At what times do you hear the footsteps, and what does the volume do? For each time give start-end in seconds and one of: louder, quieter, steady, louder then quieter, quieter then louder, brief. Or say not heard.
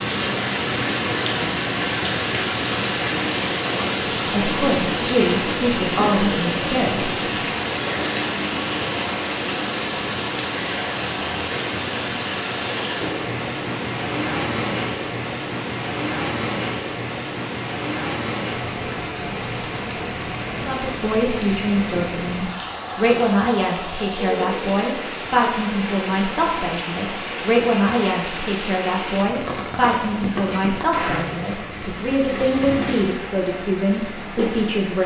not heard.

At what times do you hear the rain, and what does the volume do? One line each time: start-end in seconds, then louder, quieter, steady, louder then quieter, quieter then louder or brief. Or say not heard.
0.0-35.0 quieter.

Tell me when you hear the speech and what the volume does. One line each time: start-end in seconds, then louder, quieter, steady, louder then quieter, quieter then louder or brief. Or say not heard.
4.3-7.2 brief
20.4-35.0 steady.